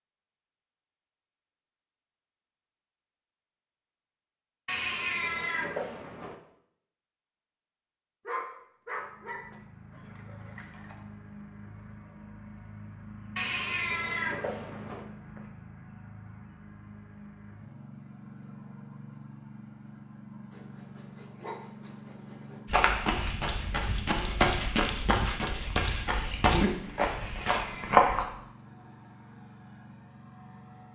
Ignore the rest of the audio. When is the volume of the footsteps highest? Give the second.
28 s.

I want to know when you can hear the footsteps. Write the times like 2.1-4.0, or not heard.
22.6-28.2.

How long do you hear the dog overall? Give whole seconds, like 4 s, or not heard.
5 s.